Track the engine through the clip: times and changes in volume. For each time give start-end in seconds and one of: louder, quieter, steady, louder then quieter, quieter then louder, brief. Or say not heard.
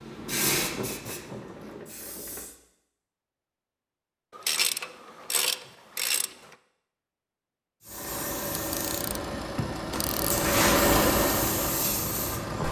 7.8-12.6 louder then quieter.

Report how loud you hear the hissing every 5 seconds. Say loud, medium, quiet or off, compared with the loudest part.
loud, medium, loud.